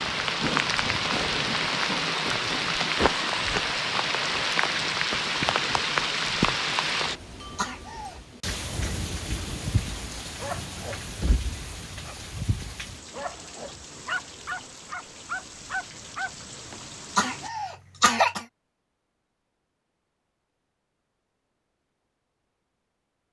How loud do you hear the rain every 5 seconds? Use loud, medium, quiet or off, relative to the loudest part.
loud, loud, quiet, quiet, off.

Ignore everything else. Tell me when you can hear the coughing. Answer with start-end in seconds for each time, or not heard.
7.2-8.2, 16.7-18.4.